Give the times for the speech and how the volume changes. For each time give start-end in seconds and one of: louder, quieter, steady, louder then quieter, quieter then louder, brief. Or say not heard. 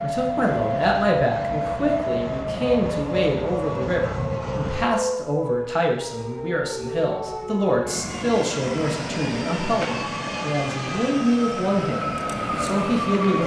0.0-13.4 steady.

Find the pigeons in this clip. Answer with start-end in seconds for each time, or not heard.
not heard.